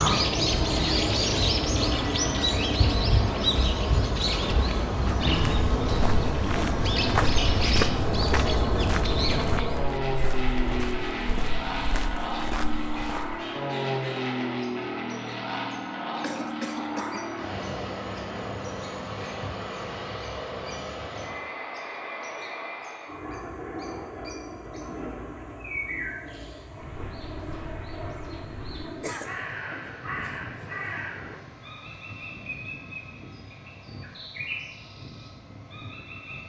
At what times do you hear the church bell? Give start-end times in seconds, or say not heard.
not heard.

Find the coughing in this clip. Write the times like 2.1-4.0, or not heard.
5.0-5.6, 16.2-17.3, 29.0-30.4.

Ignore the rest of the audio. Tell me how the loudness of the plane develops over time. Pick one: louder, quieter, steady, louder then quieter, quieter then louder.
quieter.